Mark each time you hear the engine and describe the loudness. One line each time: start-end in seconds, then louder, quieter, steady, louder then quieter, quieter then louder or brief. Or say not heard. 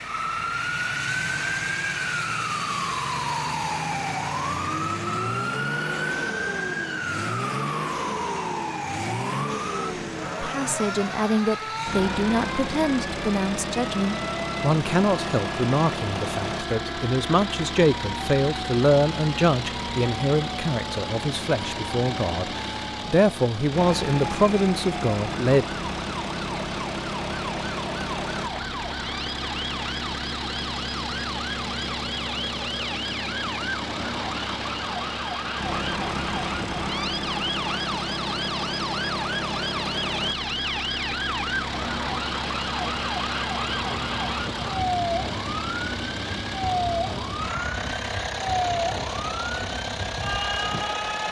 0.0-51.2 steady.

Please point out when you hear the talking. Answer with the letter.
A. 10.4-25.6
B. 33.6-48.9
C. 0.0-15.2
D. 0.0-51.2
A.